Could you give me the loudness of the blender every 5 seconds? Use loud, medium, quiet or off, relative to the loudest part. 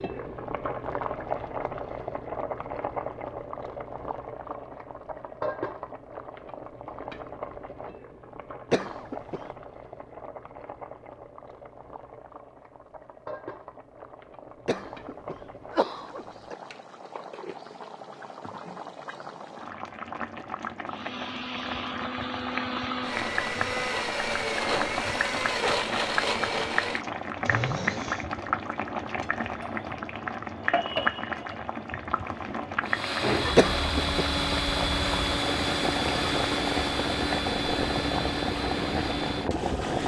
off, off, off, off, loud, loud, loud, loud.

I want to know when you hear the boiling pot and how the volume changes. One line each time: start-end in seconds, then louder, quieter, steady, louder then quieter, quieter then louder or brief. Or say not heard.
0.0-40.0 quieter then louder.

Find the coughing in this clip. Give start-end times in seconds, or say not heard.
8.7-9.5, 14.7-16.6, 33.5-34.4.